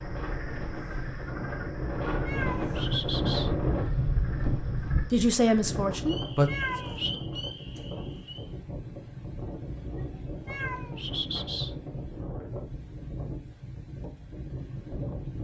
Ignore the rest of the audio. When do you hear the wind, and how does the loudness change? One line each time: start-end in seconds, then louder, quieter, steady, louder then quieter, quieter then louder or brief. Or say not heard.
0.0-15.3 quieter.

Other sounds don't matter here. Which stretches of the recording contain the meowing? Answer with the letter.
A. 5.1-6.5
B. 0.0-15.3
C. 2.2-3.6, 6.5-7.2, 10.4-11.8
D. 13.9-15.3
C.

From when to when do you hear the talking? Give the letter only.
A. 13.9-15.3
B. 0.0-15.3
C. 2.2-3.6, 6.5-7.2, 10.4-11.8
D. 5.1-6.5
D.